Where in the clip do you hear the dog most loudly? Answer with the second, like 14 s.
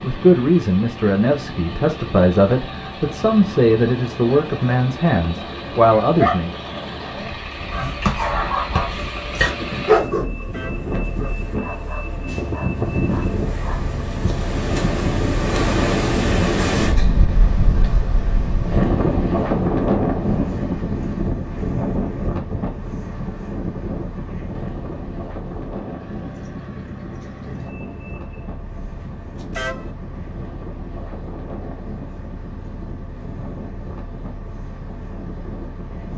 10 s.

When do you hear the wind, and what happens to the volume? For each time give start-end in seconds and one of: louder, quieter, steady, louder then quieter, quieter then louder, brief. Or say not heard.
0.0-36.1 louder then quieter.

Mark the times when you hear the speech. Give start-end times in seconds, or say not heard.
0.0-6.5.